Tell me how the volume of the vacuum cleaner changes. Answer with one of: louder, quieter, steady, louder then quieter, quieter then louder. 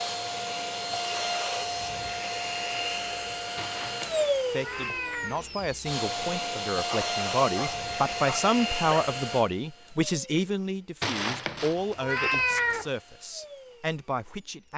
quieter.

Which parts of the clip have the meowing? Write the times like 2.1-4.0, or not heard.
3.5-5.5, 11.0-12.8.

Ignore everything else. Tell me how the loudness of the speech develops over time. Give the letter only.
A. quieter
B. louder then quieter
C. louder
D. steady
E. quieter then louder
B.